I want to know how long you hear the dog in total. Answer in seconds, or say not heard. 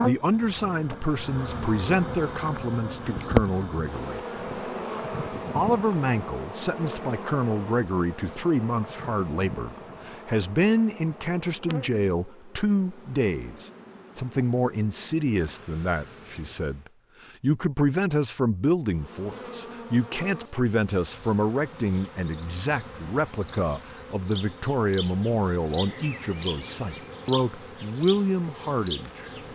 not heard.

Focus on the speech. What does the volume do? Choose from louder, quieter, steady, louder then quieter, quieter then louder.
steady.